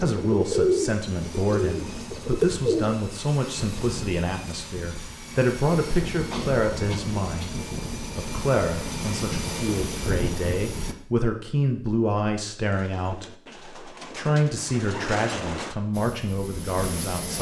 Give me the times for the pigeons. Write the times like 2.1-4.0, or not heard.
0.0-3.0, 12.7-15.8.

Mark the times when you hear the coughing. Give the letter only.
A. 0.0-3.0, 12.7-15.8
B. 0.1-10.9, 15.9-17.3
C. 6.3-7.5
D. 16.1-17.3
C.